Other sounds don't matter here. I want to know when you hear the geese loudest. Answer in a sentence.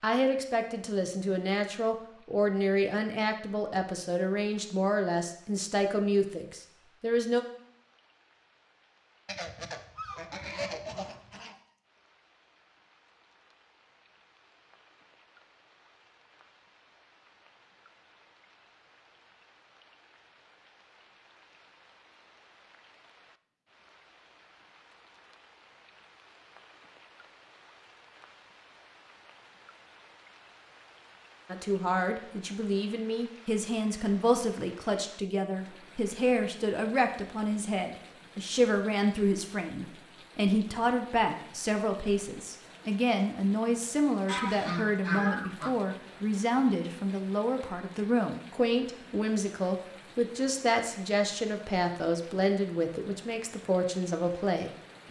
The loudest moment of the geese is at 45 seconds.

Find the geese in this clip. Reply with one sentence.
You can hear the geese from 9.2 to 11.6 s and from 44.2 to 45.8 s.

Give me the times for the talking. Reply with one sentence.
You can hear the talking from 0.0 to 7.5 s and from 31.5 to 55.0 s.